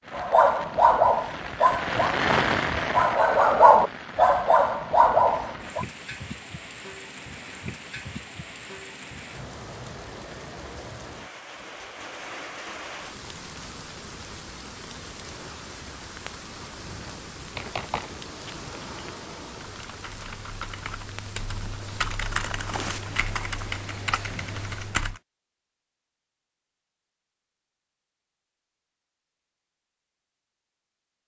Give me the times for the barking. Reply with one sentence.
The barking can be heard from 0.1 to 5.8 s.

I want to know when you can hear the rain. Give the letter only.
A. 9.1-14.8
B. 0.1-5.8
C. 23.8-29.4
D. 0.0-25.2
D.